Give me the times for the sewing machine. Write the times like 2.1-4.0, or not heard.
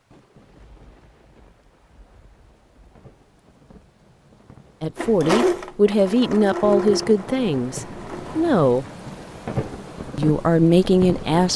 5.0-8.5.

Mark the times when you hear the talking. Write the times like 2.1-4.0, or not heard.
4.8-8.8, 10.2-11.5.